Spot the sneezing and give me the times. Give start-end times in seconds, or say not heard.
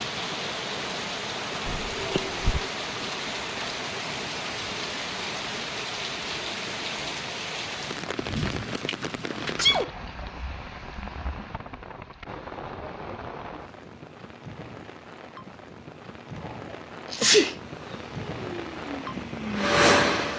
1.6-2.7, 9.4-9.9, 17.1-17.6.